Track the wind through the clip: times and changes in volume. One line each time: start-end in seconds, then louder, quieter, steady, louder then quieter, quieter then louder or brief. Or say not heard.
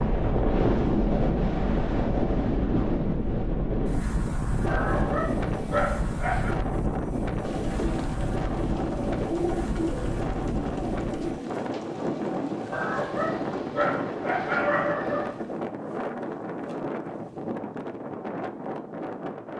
0.0-19.5 quieter.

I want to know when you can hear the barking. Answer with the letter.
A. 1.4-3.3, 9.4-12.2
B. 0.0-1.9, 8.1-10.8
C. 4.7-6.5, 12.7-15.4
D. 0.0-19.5
C.